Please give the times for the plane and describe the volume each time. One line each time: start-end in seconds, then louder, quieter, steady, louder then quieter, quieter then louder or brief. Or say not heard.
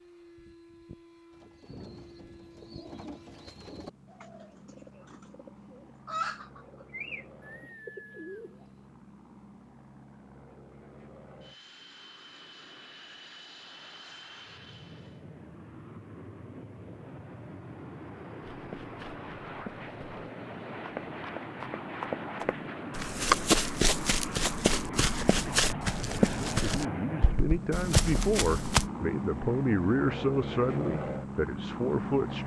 0.0-32.4 louder.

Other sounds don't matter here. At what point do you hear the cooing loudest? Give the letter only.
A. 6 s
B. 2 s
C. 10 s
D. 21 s
A.